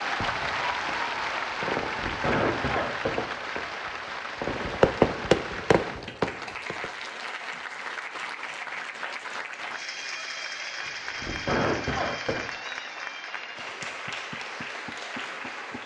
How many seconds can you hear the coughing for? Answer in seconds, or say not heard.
3 s.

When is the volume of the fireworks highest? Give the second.
5 s.